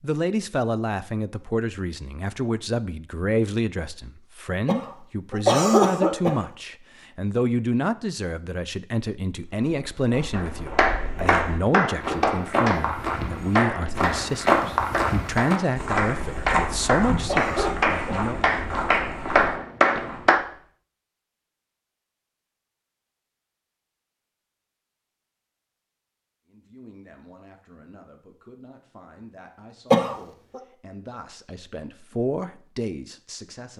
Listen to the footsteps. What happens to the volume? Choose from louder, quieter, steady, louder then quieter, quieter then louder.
louder then quieter.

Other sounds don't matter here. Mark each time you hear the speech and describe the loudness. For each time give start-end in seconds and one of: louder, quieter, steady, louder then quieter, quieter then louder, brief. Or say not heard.
0.0-18.4 steady
26.4-33.7 louder.